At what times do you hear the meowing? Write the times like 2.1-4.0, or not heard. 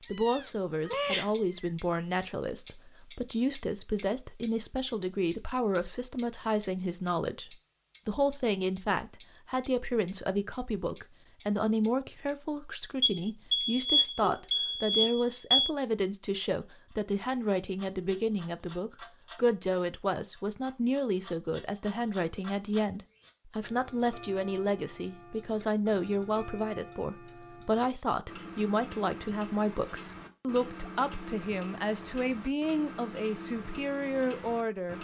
0.1-1.7.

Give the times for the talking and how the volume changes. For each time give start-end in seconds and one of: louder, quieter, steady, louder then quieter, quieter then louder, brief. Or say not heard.
0.1-35.0 steady.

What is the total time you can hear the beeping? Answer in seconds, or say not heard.
3 s.